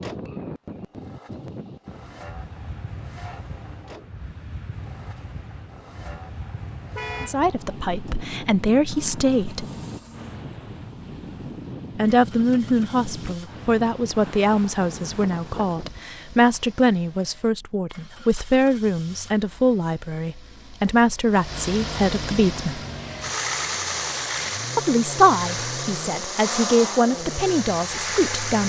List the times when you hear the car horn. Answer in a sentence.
You can hear the car horn from 7.0 to 7.4 s.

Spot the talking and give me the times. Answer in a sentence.
You can hear the talking from 7.2 to 9.7 s, from 11.9 to 22.8 s and from 24.8 to 28.6 s.